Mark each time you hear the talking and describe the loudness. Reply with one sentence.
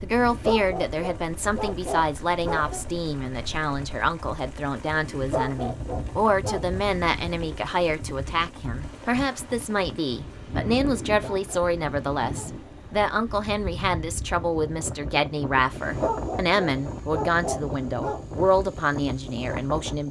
You can hear the talking from 0.0 to 20.0 s, at a steady volume.